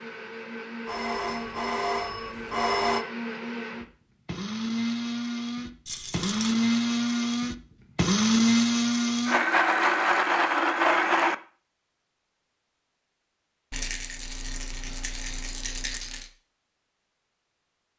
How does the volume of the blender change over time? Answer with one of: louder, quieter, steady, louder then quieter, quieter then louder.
louder.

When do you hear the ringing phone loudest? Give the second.
3 s.